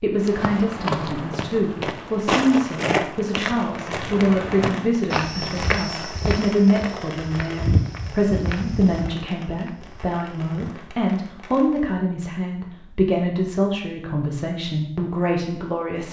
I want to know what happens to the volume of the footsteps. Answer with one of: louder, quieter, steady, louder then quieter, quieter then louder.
quieter.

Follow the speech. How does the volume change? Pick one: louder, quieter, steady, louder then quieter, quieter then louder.
steady.